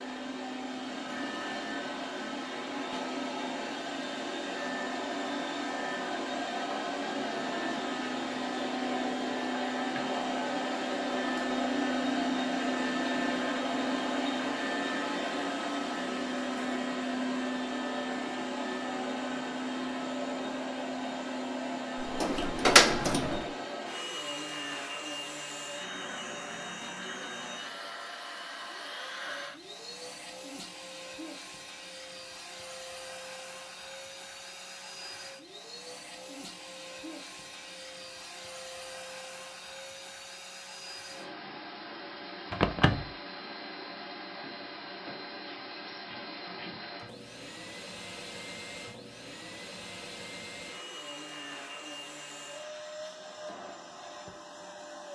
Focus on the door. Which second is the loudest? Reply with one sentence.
The volume of the door peaks at 23 seconds.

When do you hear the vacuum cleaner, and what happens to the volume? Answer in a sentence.
The vacuum cleaner can be heard from 0.0 to 55.1 s, getting quieter.